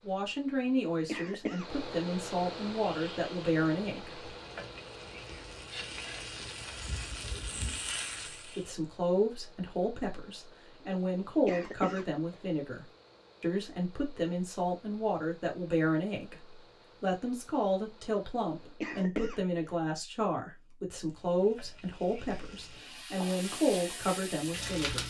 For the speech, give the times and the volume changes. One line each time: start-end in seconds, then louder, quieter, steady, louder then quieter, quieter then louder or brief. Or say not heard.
0.1-4.3 quieter then louder
8.4-25.0 steady.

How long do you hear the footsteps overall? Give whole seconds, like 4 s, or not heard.
not heard.